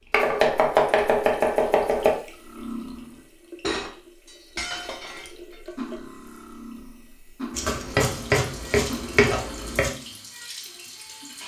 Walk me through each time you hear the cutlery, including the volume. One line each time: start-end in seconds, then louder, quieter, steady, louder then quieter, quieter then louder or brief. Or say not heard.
2.4-10.2 quieter.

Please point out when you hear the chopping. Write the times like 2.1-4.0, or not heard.
0.1-2.1, 7.5-9.9.